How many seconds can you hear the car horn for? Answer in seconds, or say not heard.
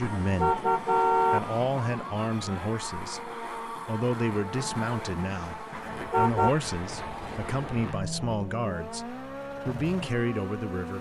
2 s.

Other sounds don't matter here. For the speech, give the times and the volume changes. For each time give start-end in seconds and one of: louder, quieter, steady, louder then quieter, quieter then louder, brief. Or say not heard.
0.0-10.9 steady.